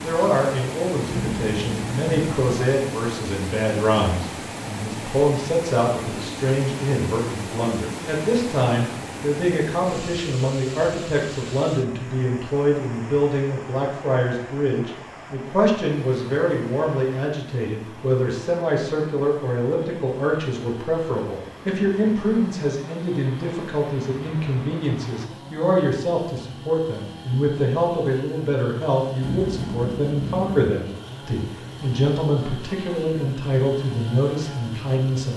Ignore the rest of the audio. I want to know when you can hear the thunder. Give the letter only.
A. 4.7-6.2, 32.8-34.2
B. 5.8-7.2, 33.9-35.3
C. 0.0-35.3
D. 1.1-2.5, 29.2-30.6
D.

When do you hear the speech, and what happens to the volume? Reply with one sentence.
You can hear the speech from 0.0 to 35.3 s, at a steady volume.